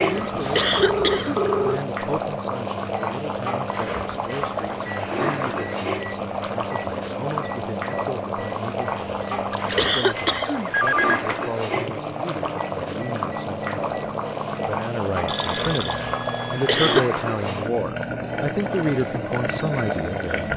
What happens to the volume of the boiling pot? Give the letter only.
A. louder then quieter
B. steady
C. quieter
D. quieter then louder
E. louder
B.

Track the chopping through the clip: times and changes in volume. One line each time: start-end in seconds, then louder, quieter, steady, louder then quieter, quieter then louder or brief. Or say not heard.
not heard.